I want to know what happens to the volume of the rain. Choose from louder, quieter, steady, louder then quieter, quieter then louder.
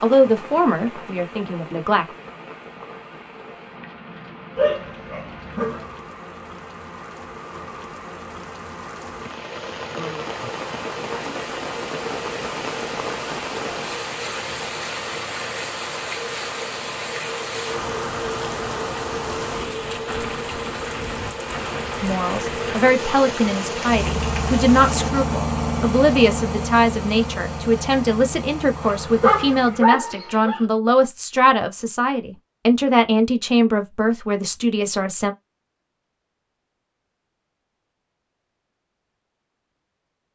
louder.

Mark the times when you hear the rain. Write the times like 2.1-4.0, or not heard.
0.0-25.1.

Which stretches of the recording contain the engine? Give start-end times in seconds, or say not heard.
9.1-29.9.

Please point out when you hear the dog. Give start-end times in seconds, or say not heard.
4.5-5.9, 28.8-30.6.